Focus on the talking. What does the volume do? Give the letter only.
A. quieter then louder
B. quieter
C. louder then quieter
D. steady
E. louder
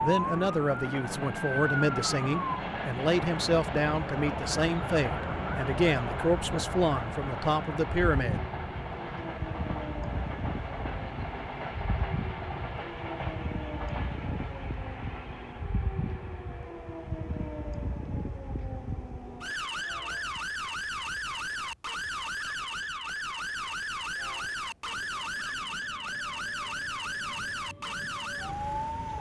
D.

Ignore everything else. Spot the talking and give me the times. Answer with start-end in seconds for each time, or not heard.
0.0-8.4.